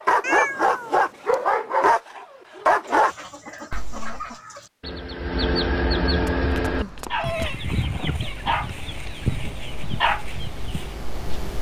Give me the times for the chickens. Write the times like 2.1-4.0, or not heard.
2.9-11.0.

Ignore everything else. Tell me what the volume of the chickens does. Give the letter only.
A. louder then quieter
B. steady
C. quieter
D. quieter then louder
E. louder
A.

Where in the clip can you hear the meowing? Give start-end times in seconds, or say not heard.
0.2-1.4, 6.2-7.6.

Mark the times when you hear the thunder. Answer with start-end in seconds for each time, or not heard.
7.7-8.2.